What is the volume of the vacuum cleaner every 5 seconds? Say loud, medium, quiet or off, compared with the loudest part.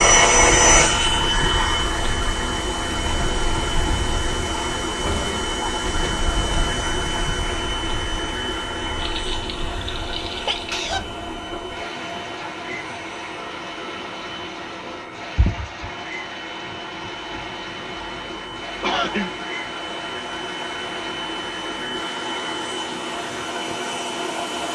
loud, medium, quiet, quiet, medium.